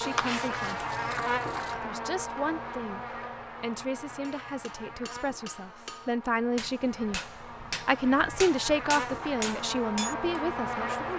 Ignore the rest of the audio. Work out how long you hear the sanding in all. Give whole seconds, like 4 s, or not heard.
2 s.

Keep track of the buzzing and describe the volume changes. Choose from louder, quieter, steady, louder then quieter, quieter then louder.
quieter then louder.